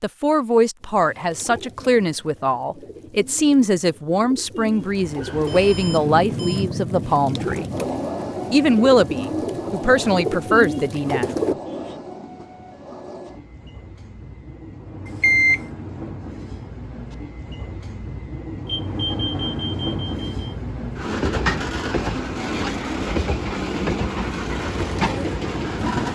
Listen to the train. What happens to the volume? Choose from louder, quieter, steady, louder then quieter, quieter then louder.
quieter then louder.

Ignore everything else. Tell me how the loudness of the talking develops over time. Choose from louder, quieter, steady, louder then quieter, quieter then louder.
steady.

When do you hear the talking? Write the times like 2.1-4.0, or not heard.
0.0-7.7, 8.5-11.6.